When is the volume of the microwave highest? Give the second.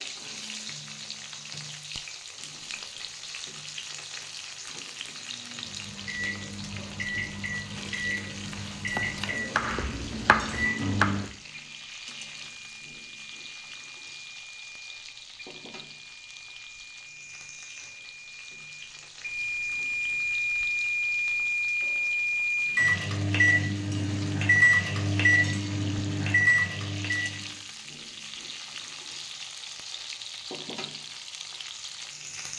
25 s.